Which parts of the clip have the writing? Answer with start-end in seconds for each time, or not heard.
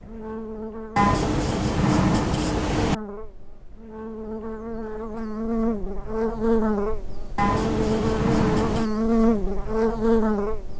0.9-3.0, 7.3-8.9.